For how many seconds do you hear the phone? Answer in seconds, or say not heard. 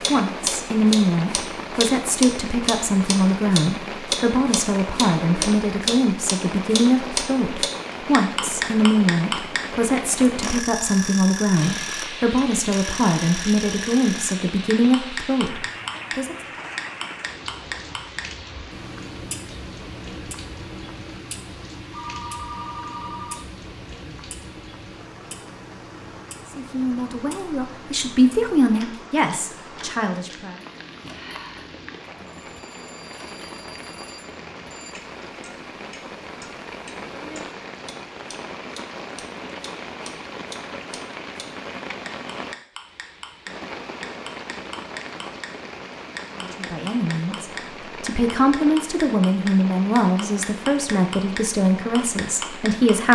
4 s.